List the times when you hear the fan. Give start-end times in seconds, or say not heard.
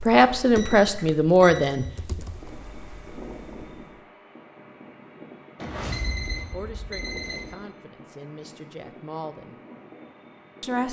2.1-10.8.